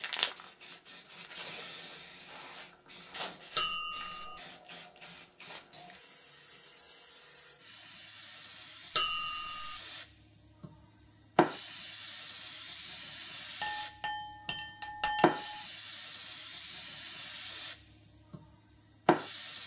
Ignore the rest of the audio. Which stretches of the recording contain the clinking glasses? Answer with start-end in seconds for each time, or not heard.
3.5-4.3, 8.9-9.8, 13.6-15.5.